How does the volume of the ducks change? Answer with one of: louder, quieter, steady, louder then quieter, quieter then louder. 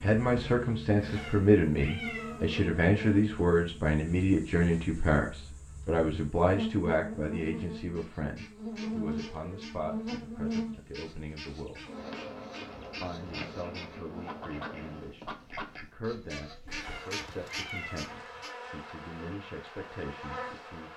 louder.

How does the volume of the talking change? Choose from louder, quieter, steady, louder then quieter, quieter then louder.
quieter.